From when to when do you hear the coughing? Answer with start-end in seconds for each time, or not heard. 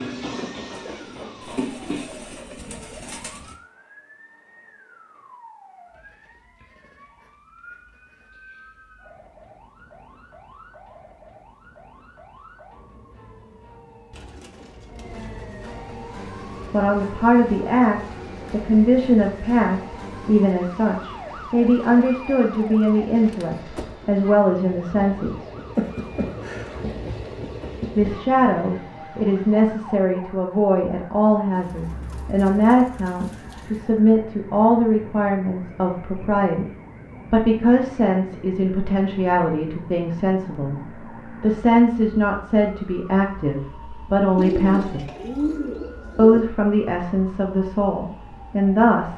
25.8-26.8.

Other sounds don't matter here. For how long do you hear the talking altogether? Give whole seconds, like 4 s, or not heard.
28 s.